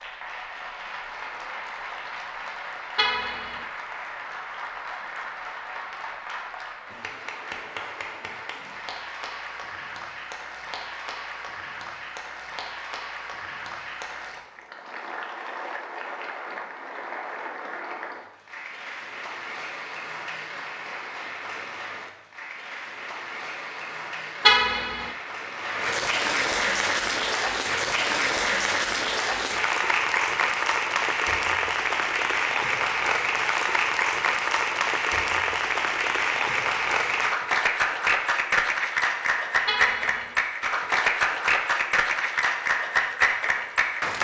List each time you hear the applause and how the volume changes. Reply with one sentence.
The applause can be heard from 0.0 to 44.1 s, getting louder.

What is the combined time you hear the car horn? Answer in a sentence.
The car horn can be heard for 2 seconds in total.